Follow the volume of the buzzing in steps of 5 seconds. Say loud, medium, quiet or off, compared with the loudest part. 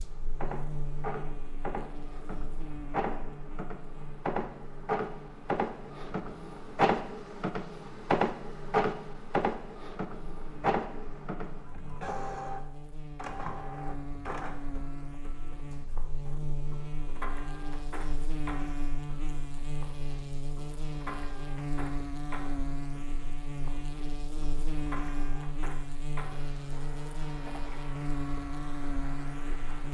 medium, quiet, medium, loud, loud, loud.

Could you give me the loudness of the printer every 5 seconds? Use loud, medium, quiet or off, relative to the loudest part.
medium, loud, medium, quiet, quiet, quiet.